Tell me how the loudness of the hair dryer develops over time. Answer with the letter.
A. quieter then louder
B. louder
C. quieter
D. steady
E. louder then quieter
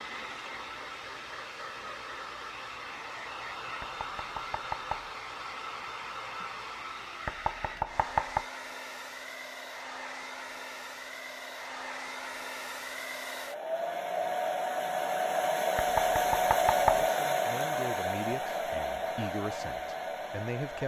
B.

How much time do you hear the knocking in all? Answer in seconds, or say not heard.
4 s.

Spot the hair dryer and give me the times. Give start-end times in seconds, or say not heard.
0.0-20.8.